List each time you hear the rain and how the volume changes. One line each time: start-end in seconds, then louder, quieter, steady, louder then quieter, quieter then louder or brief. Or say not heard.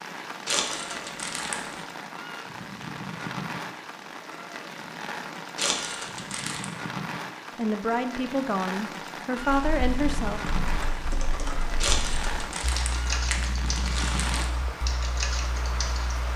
0.0-16.3 steady.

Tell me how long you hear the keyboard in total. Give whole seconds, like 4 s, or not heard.
7 s.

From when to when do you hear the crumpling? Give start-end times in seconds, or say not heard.
0.5-1.9, 5.5-6.7, 11.8-14.5.